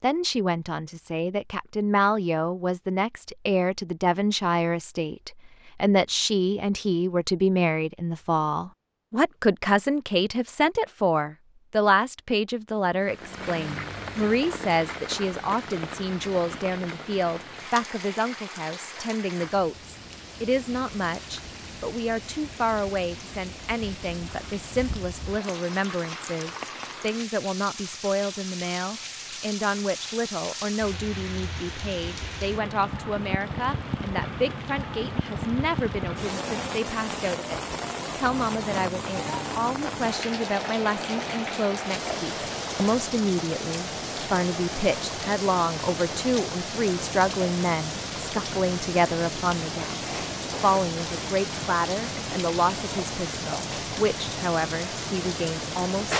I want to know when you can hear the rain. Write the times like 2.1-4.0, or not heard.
13.0-56.1.